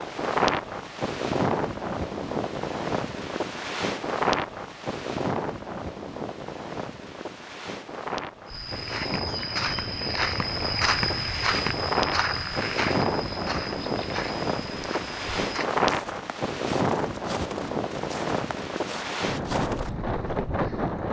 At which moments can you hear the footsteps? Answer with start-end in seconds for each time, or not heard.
8.4-20.5.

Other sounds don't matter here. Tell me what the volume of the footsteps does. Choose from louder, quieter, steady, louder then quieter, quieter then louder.
quieter.